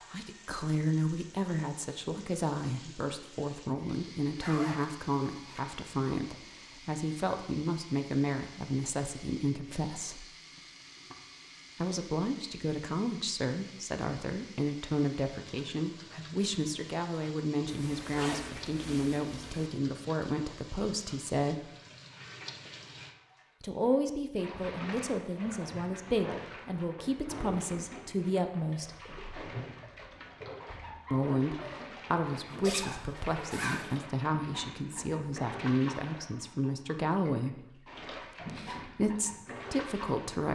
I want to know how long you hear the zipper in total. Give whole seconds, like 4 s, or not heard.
5 s.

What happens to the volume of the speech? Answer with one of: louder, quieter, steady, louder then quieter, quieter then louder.
steady.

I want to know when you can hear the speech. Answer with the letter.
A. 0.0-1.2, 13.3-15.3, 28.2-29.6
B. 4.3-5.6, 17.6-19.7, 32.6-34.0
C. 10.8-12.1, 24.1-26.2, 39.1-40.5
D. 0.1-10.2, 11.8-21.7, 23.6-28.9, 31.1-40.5
D.